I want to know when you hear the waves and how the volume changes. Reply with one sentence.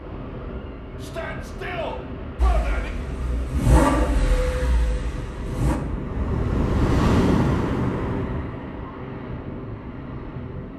You can hear the waves from 0.0 to 10.7 s, getting louder then quieter.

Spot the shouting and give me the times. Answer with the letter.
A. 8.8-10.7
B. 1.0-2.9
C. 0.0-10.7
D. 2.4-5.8
B.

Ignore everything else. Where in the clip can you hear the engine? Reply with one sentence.
You can hear the engine from 2.4 to 5.8 s.